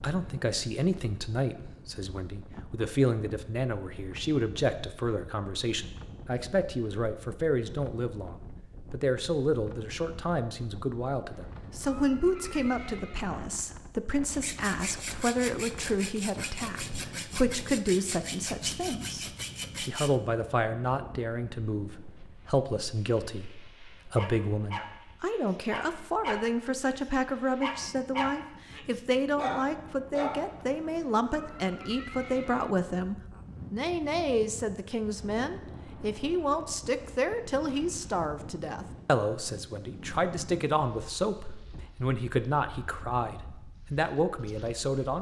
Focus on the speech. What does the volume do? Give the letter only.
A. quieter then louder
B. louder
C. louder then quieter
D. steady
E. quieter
D.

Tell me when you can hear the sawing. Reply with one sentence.
The sawing can be heard from 14.3 to 20.2 s.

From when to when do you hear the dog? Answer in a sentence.
The dog can be heard from 24.1 to 26.9 s and from 27.6 to 30.4 s.